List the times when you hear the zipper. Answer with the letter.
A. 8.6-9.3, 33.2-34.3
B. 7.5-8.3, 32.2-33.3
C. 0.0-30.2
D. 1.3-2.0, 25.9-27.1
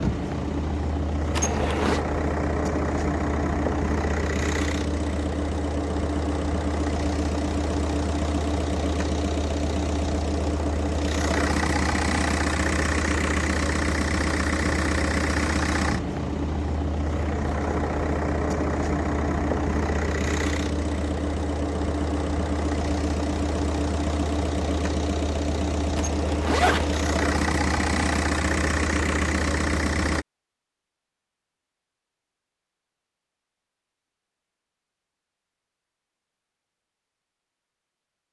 D.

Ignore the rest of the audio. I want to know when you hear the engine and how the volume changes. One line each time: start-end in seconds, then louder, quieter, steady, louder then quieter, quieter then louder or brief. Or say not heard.
0.0-30.2 steady.